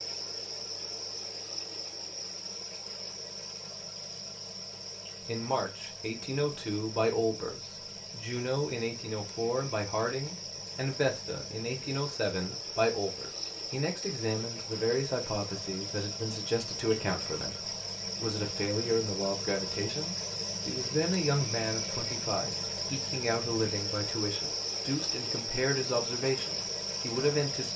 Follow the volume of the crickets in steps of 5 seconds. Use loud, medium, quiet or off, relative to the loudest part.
medium, medium, medium, loud, loud, loud.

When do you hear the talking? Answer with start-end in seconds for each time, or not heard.
5.2-27.7.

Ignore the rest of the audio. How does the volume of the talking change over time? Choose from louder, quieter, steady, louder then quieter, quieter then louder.
steady.